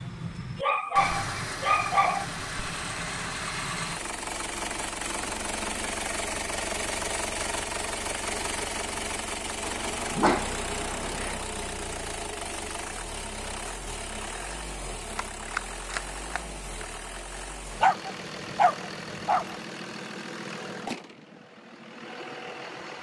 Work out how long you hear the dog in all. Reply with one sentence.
You can hear the dog for 5 seconds altogether.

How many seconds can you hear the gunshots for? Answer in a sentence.
The gunshots can be heard for 2 seconds in total.